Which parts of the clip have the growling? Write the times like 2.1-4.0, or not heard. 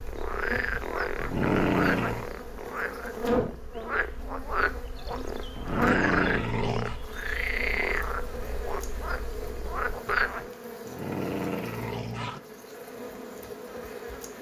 0.7-2.2, 5.1-7.0, 10.4-12.4.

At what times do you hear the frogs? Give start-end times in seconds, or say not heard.
0.0-10.4.